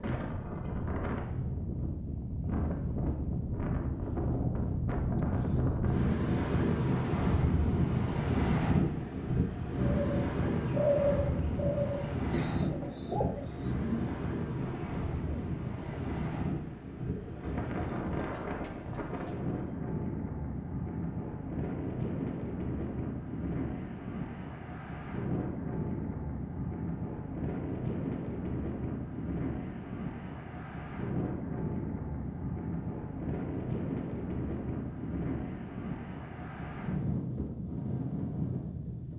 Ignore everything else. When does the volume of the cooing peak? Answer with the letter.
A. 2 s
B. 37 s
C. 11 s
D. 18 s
C.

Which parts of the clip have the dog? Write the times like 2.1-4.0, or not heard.
not heard.